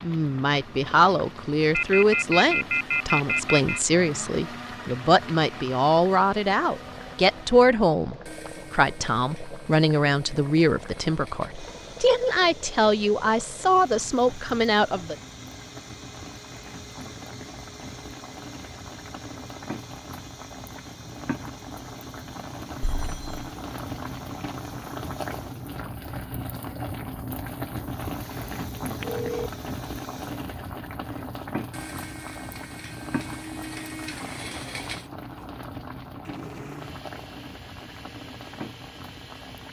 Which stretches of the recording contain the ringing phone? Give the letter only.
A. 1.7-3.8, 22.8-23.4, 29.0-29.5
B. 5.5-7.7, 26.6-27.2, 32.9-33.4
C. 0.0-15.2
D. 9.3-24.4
A.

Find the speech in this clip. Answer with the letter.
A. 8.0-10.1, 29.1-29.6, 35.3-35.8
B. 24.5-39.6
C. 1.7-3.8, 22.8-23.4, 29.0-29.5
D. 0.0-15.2
D.